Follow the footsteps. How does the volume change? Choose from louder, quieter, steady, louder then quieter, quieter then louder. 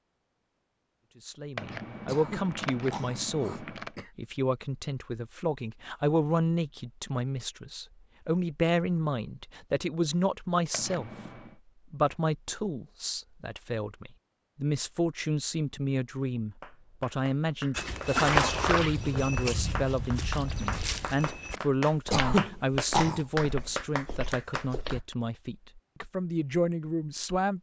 quieter.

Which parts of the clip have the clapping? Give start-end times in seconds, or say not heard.
16.6-25.1.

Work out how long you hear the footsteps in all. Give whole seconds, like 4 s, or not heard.
7 s.